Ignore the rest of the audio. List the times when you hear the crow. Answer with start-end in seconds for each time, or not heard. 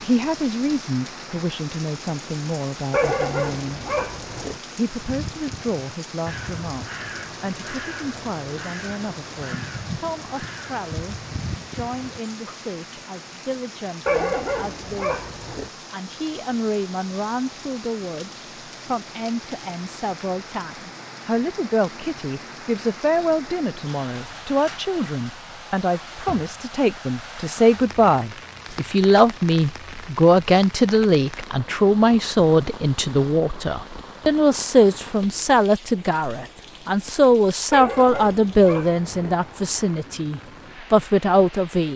4.8-12.6.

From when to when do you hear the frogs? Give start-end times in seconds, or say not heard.
not heard.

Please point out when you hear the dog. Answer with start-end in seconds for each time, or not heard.
2.9-4.6, 14.1-15.7, 37.7-39.4.